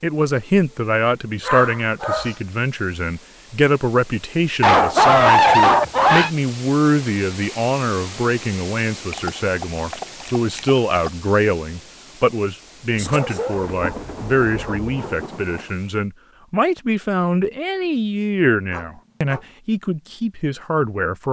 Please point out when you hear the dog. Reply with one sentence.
The dog can be heard from 1.4 to 2.3 s, from 4.6 to 6.3 s, from 9.1 to 11.1 s, from 12.9 to 15.2 s and from 18.7 to 19.4 s.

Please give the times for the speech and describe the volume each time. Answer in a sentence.
You can hear the speech from 0.0 to 21.2 s, at a steady volume.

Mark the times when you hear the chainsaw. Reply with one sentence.
The chainsaw can't be heard in this clip.